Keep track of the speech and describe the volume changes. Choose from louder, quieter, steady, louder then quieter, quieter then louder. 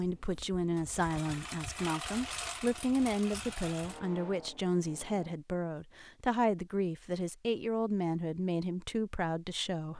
steady.